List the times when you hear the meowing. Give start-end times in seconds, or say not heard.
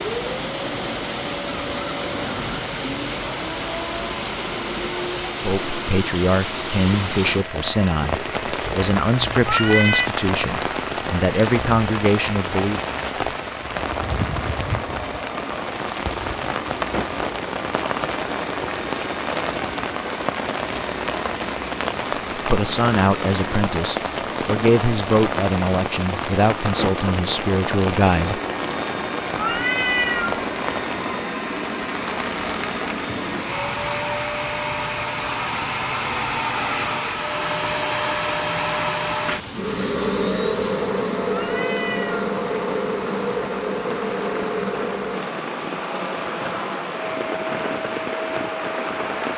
9.4-10.1, 29.4-30.4, 41.3-42.2.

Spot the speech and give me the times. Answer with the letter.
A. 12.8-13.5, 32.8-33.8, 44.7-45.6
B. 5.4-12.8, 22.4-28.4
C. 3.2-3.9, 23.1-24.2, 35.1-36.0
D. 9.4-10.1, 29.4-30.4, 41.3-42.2
B.